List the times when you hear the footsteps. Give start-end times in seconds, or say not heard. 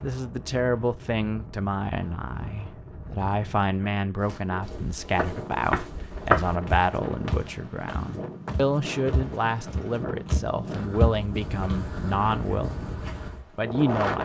4.2-13.4.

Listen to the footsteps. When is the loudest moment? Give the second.
6 s.